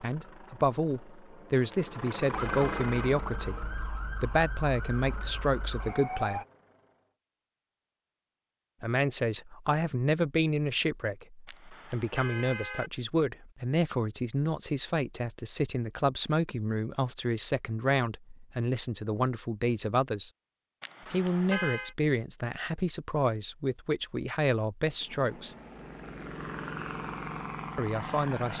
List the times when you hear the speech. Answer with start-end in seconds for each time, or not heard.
0.0-6.4, 8.8-20.3, 21.1-25.6, 27.8-28.5.